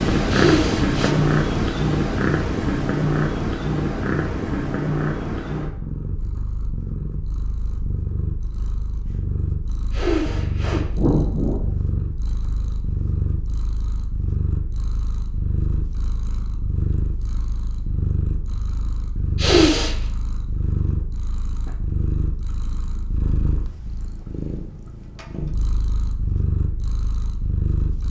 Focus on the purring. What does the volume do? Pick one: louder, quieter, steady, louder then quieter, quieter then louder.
quieter.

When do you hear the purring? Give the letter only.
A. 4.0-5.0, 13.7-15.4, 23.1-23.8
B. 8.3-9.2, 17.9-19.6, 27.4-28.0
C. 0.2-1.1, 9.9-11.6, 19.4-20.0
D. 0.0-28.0
D.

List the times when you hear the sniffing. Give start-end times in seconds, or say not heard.
0.2-1.1, 9.9-11.6, 19.4-20.0.